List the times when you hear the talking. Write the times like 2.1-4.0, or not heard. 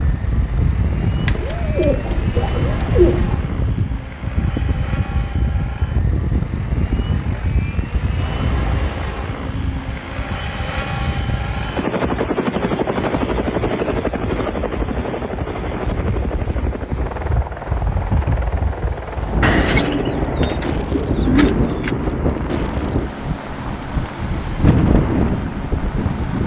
not heard.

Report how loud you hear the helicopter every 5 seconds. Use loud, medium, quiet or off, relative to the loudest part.
medium, medium, loud, medium, medium, medium.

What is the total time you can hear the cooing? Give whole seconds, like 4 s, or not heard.
5 s.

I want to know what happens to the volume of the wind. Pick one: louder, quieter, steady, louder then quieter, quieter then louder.
quieter then louder.